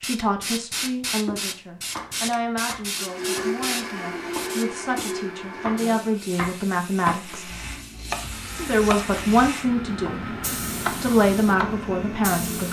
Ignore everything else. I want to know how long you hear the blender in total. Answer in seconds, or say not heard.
8 s.